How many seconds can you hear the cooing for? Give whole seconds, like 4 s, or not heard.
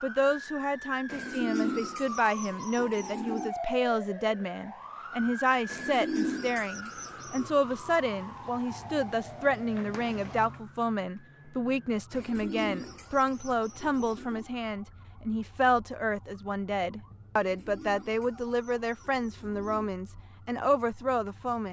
9 s.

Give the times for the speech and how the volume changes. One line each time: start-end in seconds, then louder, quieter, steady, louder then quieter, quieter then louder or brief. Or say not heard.
0.0-21.6 steady.